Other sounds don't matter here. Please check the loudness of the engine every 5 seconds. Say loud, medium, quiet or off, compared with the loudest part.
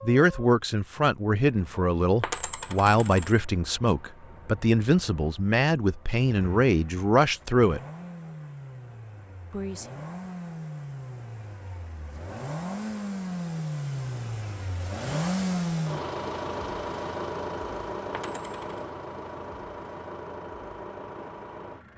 quiet, quiet, loud, loud, medium.